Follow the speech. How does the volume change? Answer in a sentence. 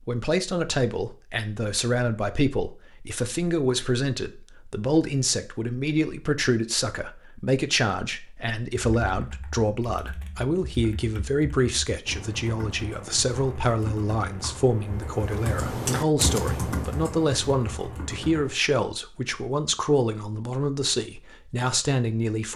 The volume of the speech stays about the same.